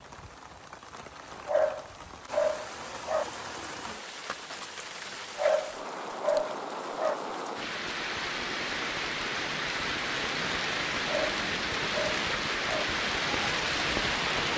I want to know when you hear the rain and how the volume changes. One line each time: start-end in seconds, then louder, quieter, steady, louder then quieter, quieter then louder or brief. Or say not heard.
0.0-14.5 louder.